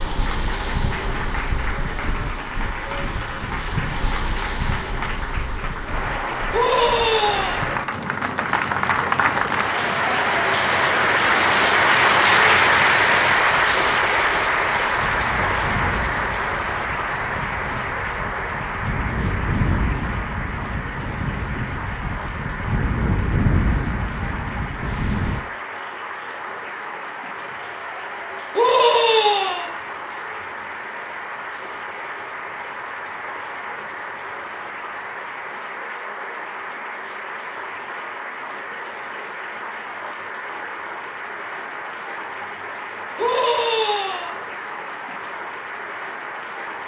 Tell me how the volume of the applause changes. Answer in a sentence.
The volume of the applause goes up, then down.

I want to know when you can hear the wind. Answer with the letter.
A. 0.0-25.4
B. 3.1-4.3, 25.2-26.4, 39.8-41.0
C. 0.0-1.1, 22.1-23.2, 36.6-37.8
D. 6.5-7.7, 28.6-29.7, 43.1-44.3
A.